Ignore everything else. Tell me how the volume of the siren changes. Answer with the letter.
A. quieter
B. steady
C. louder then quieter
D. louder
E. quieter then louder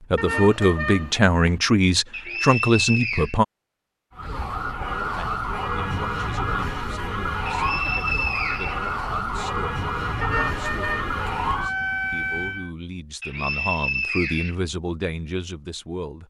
B.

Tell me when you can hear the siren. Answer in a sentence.
The siren can be heard from 4.2 to 12.7 s.